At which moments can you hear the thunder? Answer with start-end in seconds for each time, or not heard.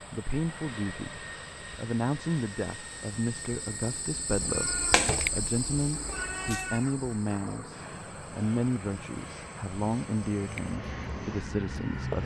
not heard.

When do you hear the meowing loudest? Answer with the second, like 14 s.
5 s.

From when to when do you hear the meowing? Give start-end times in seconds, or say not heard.
4.3-6.9.